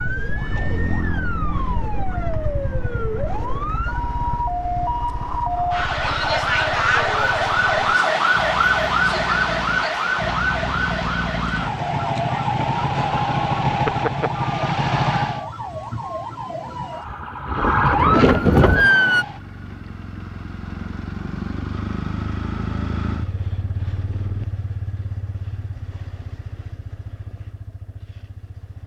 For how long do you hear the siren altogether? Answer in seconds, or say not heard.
19 s.